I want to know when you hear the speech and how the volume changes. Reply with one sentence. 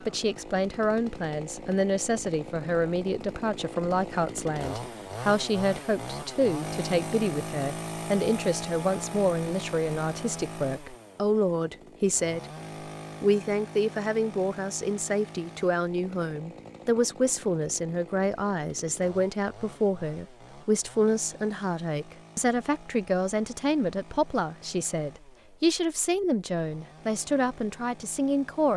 You can hear the speech from 0.0 to 12.4 s, at a steady volume; and from 13.2 to 28.7 s, at a steady volume.